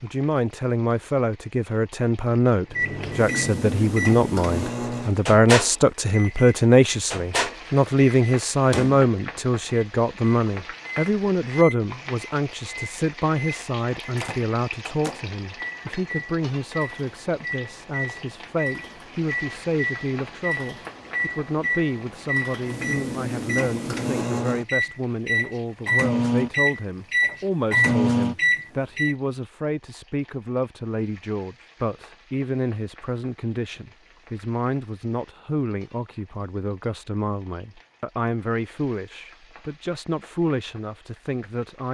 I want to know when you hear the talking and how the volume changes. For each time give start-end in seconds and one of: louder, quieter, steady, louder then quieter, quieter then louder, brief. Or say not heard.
0.0-41.8 quieter.